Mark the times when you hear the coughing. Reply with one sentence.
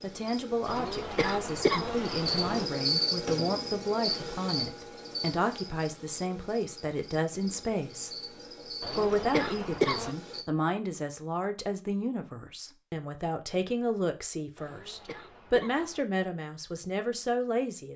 The coughing can be heard from 0.7 to 2.6 s, from 8.8 to 10.2 s and from 14.6 to 16.1 s.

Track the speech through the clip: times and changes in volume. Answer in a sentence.
The speech can be heard from 0.0 to 8.3 s, at a steady volume; and from 8.9 to 17.9 s, at a steady volume.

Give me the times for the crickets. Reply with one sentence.
The crickets can be heard from 0.0 to 10.4 s.